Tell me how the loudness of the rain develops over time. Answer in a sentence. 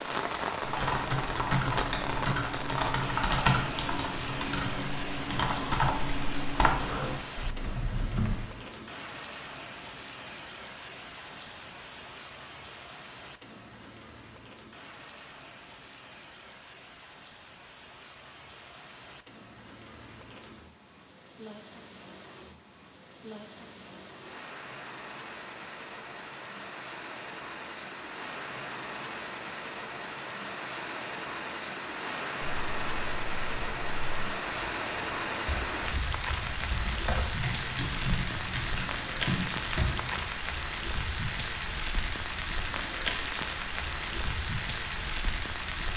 The volume of the rain goes down, then up.